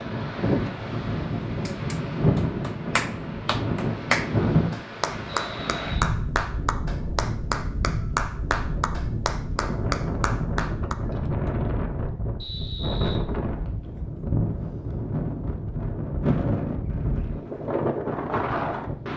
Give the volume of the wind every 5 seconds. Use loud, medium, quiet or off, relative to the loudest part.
loud, medium, loud, loud.